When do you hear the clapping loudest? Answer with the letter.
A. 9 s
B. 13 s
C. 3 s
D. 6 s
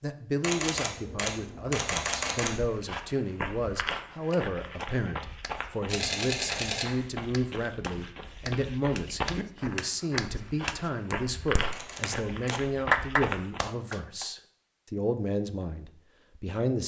B.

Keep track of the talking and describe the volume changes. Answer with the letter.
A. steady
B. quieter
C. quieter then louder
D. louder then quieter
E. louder
A.